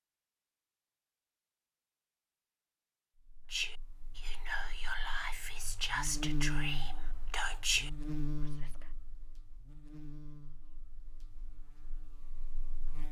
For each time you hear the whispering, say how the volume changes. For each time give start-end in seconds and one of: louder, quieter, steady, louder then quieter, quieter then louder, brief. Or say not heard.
3.5-8.8 louder.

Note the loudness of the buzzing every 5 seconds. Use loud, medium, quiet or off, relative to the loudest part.
quiet, loud, quiet.